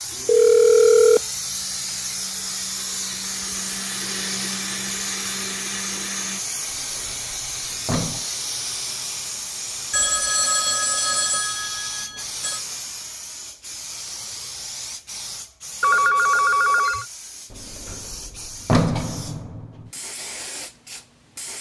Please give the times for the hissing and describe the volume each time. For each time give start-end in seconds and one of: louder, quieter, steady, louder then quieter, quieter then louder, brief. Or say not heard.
0.0-21.5 quieter.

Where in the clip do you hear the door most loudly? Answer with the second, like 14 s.
19 s.